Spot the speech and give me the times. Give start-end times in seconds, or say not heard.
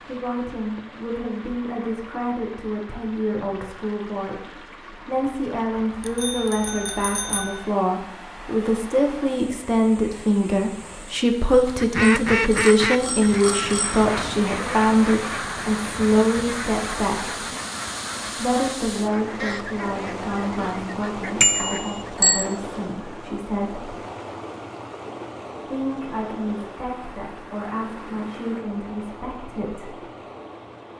0.0-17.4, 18.4-23.9, 25.6-30.0.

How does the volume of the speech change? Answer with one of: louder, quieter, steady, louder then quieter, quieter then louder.
louder then quieter.